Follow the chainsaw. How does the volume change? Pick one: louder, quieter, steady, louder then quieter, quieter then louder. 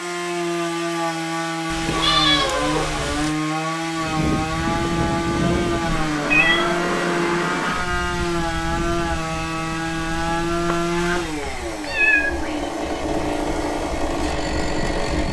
steady.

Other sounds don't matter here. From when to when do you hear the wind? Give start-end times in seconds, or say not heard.
4.0-15.2.